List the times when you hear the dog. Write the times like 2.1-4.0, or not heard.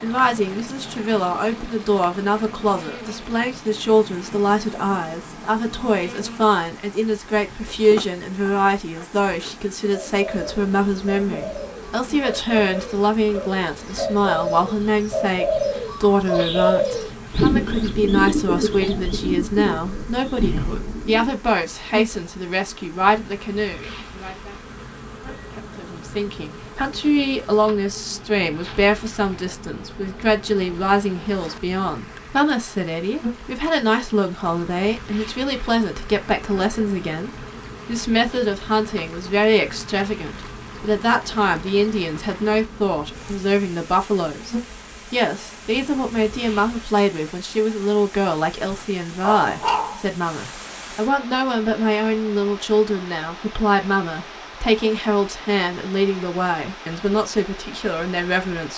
48.7-50.1.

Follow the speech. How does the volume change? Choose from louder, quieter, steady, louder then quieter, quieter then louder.
steady.